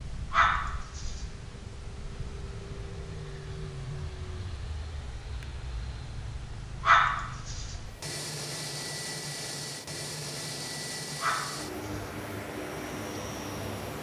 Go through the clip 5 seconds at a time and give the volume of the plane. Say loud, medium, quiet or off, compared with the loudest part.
medium, loud, loud.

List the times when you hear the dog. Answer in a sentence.
You can hear the dog from 0.3 to 1.1 s, from 6.8 to 7.6 s and from 11.2 to 12.0 s.